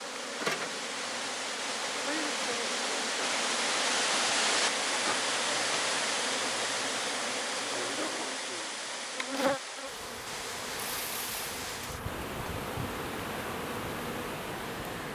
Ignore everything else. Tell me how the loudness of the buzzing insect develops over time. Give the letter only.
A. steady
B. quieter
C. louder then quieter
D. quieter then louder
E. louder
A.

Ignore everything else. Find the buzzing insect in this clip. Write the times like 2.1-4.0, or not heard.
0.0-15.1.